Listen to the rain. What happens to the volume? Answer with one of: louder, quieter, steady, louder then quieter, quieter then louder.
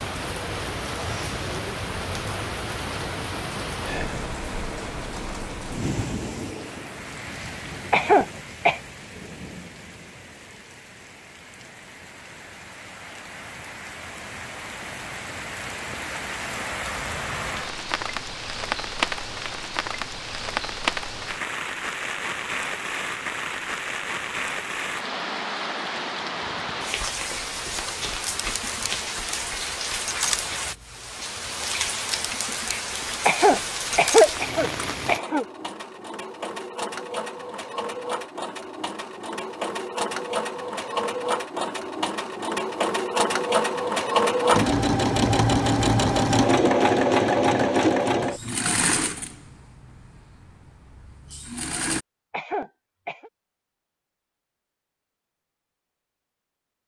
quieter then louder.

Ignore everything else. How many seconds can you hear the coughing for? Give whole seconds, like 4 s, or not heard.
4 s.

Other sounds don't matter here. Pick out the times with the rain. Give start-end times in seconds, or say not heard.
0.0-35.2.